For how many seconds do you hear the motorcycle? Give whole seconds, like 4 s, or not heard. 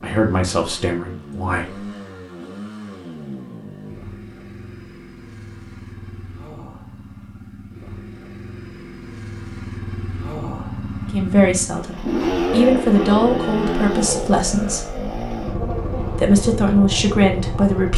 18 s.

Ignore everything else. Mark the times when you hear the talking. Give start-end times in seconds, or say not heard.
0.0-1.8, 11.1-14.8, 15.9-17.9.